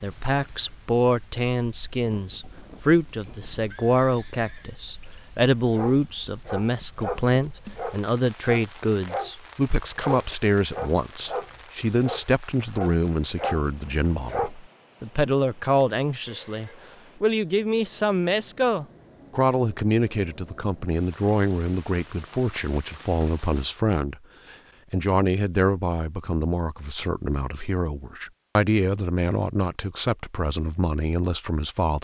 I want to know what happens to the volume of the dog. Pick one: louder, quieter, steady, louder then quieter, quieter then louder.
steady.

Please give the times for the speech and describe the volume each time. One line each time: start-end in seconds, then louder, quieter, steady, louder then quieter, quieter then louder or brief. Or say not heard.
0.0-31.9 steady.